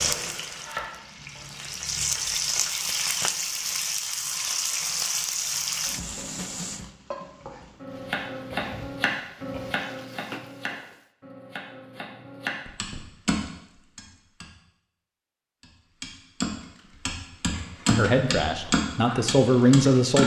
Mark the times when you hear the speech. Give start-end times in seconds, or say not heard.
17.9-20.2.